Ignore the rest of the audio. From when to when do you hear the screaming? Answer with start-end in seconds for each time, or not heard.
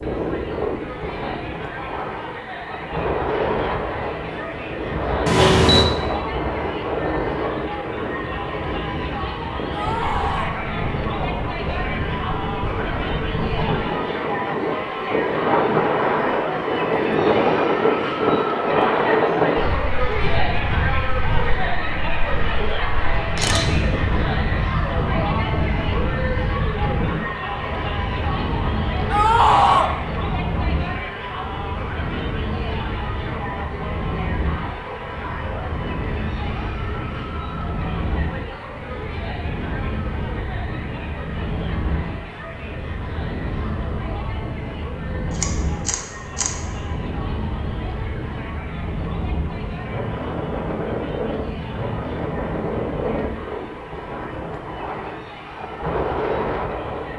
9.7-10.6, 29.1-29.9.